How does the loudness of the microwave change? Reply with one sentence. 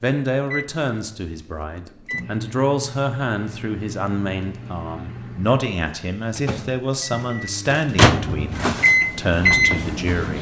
The volume of the microwave goes up.